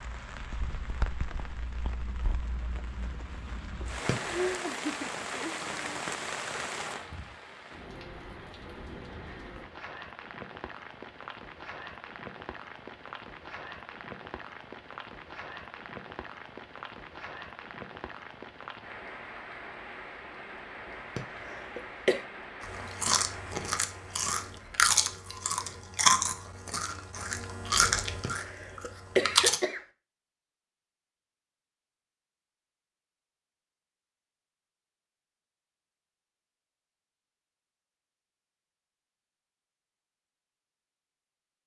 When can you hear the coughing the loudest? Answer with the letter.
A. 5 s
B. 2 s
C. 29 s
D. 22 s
C.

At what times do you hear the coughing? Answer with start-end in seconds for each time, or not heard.
3.8-4.6, 20.9-22.2, 28.2-29.8.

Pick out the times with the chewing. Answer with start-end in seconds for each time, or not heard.
22.6-29.6.